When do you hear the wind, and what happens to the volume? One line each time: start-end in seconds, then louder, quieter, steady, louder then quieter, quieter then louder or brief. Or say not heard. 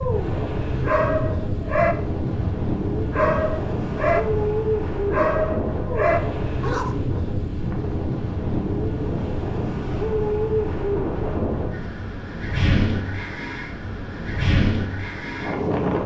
0.0-16.0 steady.